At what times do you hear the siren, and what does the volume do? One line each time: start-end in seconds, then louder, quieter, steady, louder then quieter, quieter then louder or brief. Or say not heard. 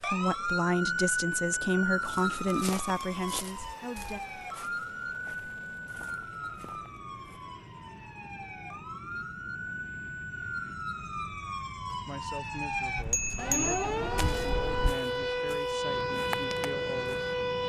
0.0-17.6 quieter then louder.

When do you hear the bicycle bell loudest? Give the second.
14 s.